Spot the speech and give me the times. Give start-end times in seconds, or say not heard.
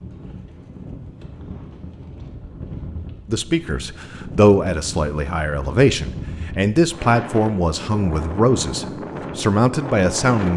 3.2-10.5.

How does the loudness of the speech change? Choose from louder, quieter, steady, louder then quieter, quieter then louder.
steady.